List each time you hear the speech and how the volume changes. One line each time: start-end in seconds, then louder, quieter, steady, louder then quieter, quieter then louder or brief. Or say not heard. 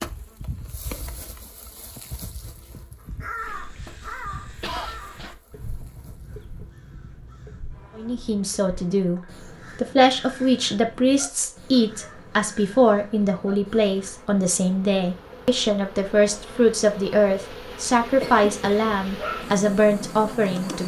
8.0-20.8 steady.